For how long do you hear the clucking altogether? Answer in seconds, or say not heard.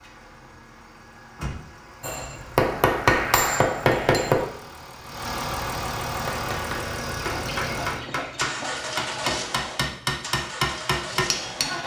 2 s.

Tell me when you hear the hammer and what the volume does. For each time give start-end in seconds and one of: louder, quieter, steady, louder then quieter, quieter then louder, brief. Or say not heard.
2.0-4.5 brief
6.1-11.8 louder.